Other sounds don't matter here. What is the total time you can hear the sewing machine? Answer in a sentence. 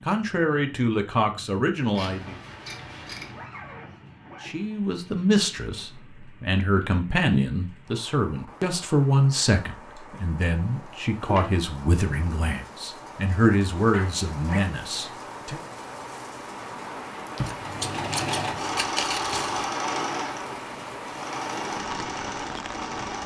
The sewing machine can be heard for 6 seconds in total.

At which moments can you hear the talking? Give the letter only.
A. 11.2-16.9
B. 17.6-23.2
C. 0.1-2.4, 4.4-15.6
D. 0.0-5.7
C.